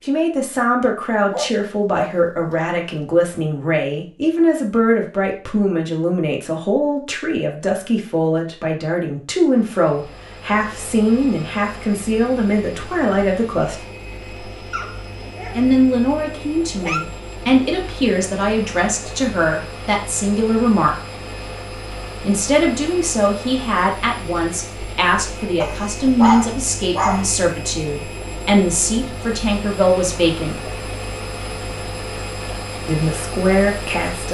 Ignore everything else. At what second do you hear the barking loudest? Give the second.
26 s.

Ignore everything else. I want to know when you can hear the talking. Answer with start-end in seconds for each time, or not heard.
0.1-13.8, 15.6-20.9, 22.2-30.6, 32.9-34.2.